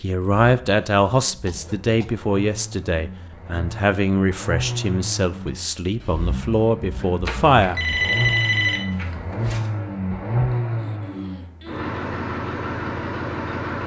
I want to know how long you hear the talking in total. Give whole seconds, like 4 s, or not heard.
8 s.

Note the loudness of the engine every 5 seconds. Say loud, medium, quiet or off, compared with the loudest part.
medium, loud, loud.